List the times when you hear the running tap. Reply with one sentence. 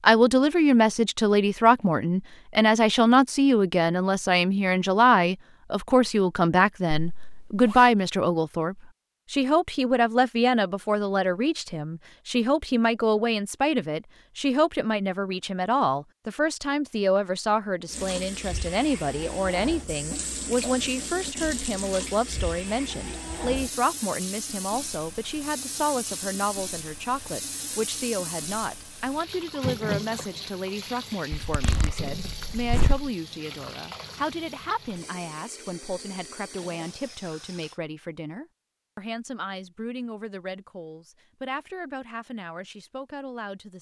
You can hear the running tap from 17.9 to 37.8 s.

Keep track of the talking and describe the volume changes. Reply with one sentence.
The loudness of the talking goes down.